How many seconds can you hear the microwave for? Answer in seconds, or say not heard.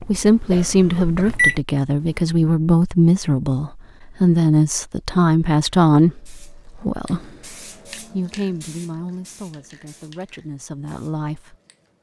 2 s.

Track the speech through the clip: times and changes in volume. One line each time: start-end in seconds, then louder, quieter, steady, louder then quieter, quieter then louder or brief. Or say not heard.
0.1-11.6 quieter.